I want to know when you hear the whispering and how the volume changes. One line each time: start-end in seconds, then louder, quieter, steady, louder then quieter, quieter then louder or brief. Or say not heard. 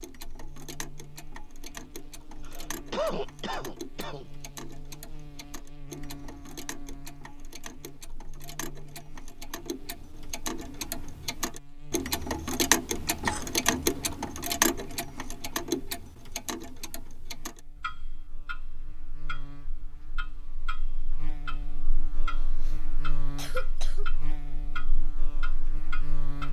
not heard.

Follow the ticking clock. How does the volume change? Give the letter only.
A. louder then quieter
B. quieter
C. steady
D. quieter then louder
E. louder
A.